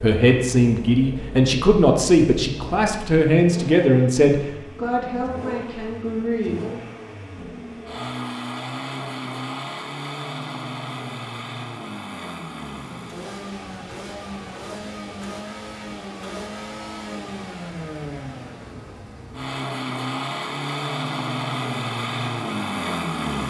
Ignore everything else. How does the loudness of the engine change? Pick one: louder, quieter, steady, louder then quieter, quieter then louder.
louder.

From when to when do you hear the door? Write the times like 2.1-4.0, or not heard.
not heard.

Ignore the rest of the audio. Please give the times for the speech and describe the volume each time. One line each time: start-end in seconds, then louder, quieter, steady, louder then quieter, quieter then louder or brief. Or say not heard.
0.0-6.5 quieter.